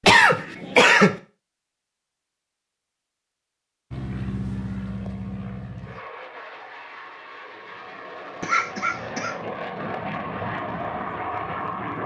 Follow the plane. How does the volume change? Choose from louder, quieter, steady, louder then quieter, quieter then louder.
quieter then louder.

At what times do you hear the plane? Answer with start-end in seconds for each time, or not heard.
3.9-12.0.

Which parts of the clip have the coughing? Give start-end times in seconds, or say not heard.
0.1-1.1, 8.4-9.3.